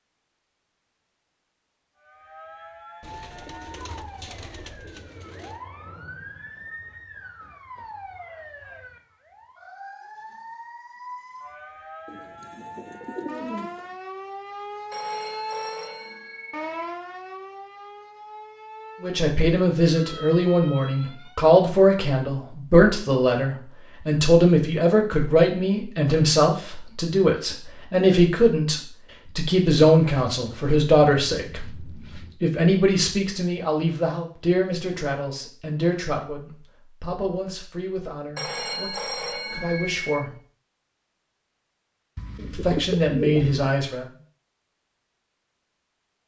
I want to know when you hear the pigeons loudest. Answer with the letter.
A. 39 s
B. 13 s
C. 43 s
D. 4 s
C.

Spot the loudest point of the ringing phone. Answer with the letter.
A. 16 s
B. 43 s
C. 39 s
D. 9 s
C.